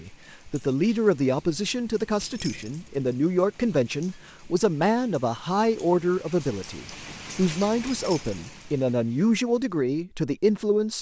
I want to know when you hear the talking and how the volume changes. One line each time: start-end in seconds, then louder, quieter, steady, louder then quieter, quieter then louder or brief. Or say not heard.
0.0-10.9 steady.